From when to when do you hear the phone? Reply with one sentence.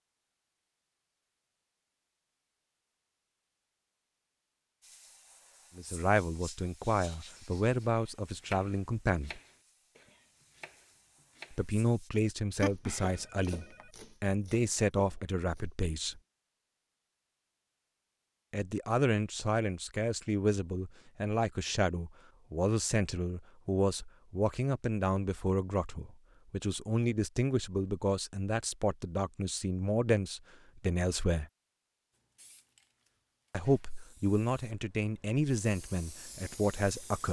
You can hear the phone from 12.6 to 13.9 s.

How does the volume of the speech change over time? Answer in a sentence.
The loudness of the speech stays about the same.